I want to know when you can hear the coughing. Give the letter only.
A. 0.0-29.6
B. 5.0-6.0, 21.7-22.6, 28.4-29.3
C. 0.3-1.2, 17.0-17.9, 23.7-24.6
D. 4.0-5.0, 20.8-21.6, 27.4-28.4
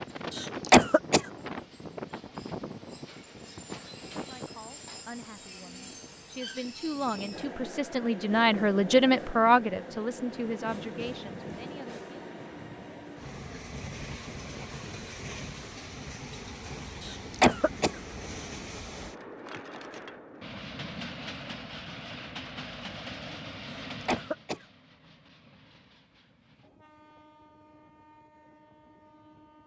C.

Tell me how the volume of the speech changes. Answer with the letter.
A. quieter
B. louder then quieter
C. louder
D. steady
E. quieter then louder
B.